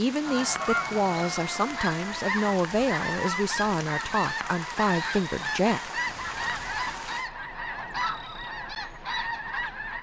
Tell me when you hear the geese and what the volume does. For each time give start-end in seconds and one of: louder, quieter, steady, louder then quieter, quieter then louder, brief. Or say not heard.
0.2-9.9 steady.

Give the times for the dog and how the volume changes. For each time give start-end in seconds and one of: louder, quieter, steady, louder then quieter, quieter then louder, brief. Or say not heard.
not heard.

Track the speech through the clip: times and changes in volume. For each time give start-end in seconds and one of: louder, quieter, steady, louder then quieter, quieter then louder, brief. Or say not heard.
0.0-5.8 steady.